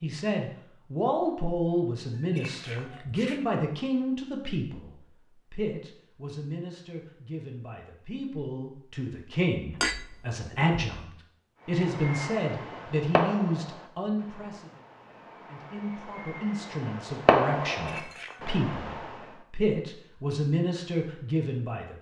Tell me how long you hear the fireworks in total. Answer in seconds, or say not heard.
8 s.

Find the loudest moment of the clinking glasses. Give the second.
10 s.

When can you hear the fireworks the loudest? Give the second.
17 s.